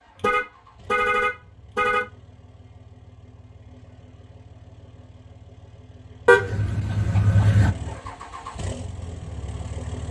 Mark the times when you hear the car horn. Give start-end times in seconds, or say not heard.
0.1-2.0, 6.2-7.7.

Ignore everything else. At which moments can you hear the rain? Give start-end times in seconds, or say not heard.
not heard.